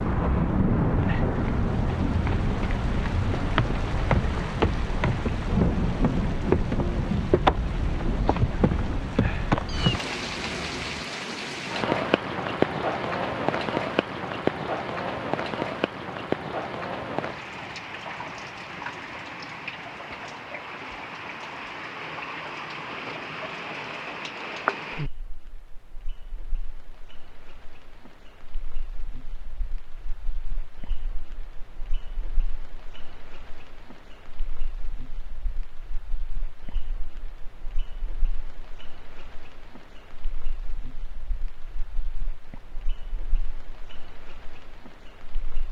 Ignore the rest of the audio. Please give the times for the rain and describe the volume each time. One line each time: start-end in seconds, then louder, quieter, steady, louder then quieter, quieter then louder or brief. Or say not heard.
0.0-45.6 quieter.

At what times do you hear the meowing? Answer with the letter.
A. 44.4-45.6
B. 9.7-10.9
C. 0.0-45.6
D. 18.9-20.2
B.